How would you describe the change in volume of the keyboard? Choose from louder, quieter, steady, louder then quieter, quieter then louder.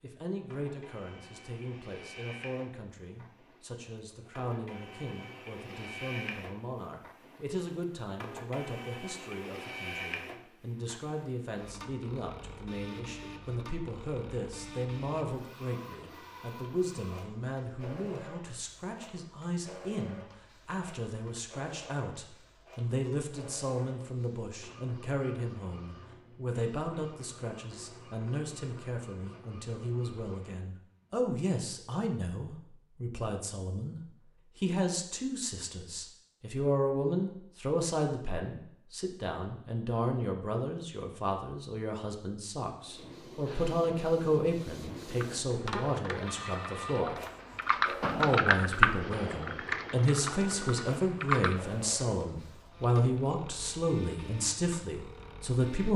louder then quieter.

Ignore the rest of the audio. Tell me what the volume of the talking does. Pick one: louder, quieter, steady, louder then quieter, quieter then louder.
louder.